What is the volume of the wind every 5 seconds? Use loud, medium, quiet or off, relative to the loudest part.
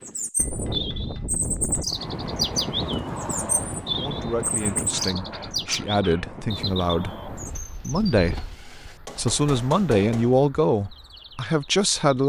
loud, medium, off.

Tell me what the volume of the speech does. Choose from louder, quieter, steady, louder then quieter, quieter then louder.
louder.